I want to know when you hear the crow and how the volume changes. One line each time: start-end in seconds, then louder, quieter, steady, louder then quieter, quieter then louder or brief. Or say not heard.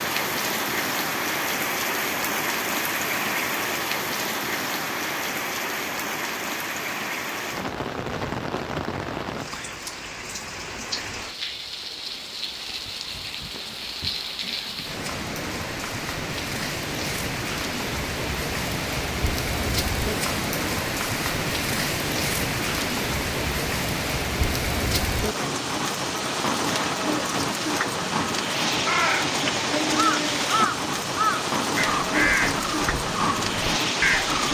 28.8-34.5 steady.